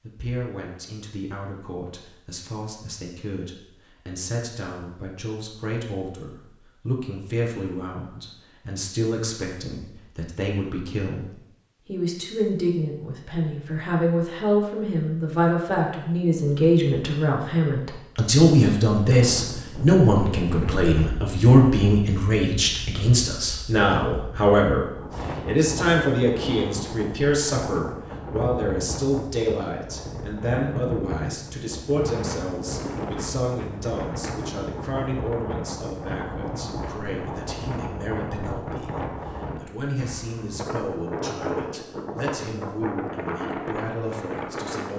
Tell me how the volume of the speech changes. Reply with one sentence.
The loudness of the speech goes up, then down.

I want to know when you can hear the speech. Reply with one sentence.
The speech can be heard from 0.0 to 44.9 s.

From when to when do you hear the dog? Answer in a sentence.
You can't hear the dog here.